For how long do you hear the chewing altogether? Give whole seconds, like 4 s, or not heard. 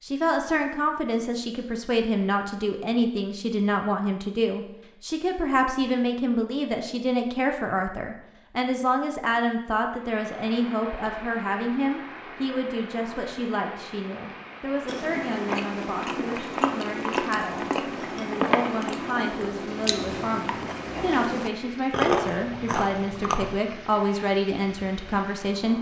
9 s.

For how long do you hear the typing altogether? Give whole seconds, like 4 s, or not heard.
not heard.